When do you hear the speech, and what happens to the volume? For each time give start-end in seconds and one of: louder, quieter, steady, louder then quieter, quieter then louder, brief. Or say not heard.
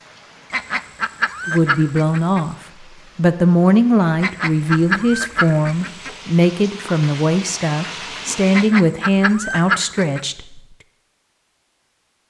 1.4-2.5 brief
3.1-10.6 steady.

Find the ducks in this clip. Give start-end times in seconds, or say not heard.
0.5-2.4, 4.2-6.1, 8.5-10.2.